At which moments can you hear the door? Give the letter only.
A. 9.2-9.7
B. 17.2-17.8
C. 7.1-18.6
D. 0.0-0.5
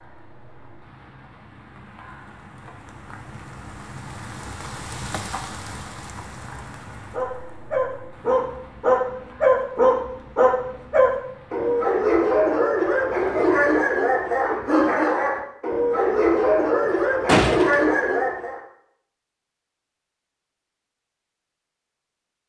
B.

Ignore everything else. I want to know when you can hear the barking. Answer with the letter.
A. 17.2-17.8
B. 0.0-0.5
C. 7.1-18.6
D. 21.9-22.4
C.